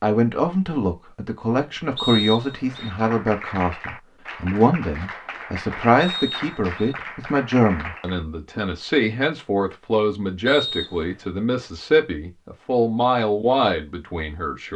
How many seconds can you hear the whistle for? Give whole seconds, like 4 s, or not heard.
3 s.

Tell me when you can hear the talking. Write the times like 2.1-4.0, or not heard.
0.0-14.7.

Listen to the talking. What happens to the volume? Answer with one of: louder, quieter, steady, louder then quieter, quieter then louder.
steady.